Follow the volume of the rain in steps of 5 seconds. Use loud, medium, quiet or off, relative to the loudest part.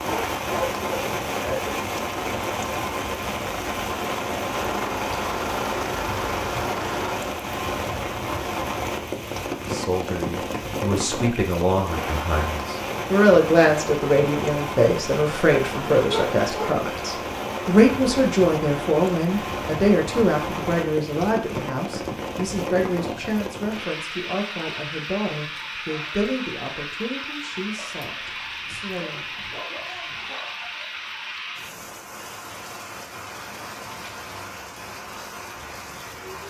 loud, loud, loud, loud, loud, medium, medium, medium.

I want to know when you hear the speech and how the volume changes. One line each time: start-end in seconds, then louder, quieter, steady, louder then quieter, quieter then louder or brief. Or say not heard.
9.6-29.2 quieter.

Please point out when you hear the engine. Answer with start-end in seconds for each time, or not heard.
4.5-7.2.